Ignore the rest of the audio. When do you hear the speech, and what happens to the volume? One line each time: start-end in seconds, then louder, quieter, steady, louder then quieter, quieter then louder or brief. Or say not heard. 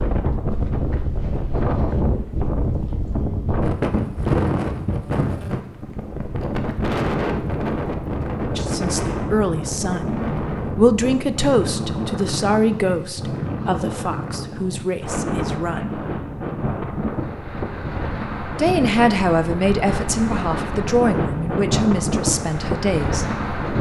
8.6-15.9 louder then quieter
18.6-23.4 quieter.